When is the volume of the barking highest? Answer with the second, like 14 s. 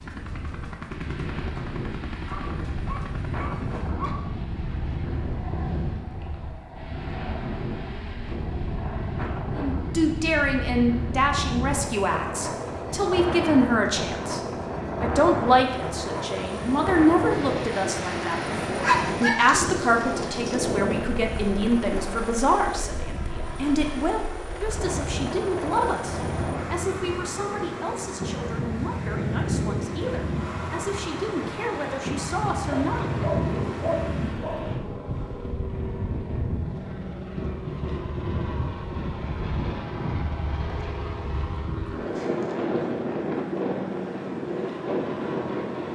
19 s.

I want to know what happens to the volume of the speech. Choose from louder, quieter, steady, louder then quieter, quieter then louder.
quieter.